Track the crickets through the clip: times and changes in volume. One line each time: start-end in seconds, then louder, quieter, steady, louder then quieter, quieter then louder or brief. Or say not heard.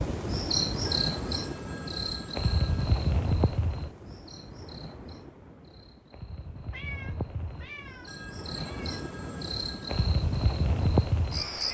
0.0-11.6 quieter then louder.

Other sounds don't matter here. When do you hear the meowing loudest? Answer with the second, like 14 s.
7 s.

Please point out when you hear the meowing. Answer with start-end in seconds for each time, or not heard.
6.7-9.0.